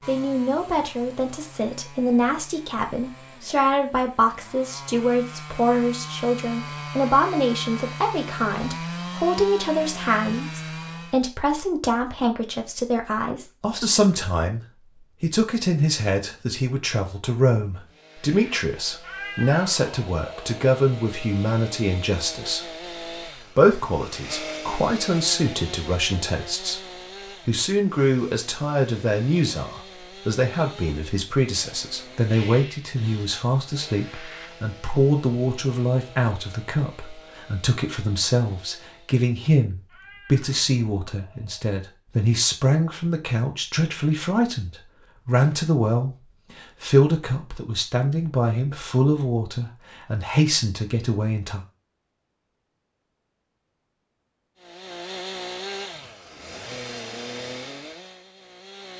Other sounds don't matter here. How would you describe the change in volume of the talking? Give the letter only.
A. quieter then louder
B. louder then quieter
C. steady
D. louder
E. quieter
C.